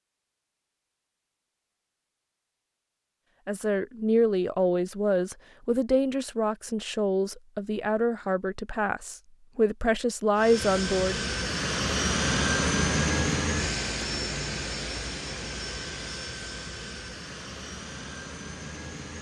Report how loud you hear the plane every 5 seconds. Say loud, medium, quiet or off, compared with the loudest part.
off, off, loud, medium.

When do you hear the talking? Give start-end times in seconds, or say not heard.
3.5-11.2.